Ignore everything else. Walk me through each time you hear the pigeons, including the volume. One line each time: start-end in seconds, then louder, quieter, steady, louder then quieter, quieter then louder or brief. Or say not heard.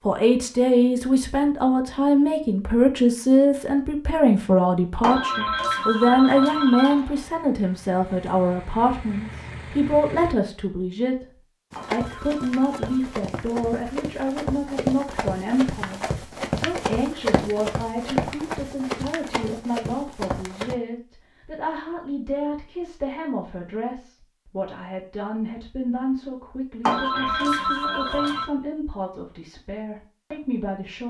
not heard.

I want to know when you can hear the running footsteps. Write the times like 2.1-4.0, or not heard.
11.7-20.8.